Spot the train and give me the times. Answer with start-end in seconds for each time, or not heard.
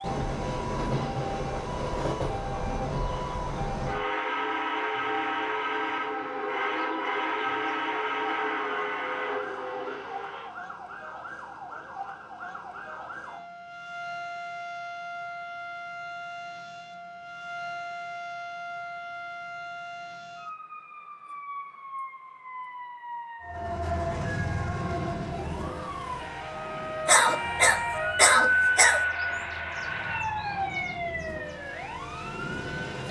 0.0-10.6, 23.4-33.0.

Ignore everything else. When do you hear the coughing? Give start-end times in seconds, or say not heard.
27.1-29.0.